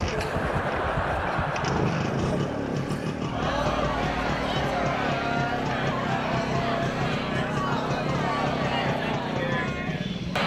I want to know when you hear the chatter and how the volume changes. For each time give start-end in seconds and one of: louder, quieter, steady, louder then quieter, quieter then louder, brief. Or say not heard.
0.0-10.4 steady.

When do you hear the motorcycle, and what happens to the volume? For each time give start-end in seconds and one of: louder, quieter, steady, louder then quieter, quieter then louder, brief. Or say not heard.
0.0-10.4 steady.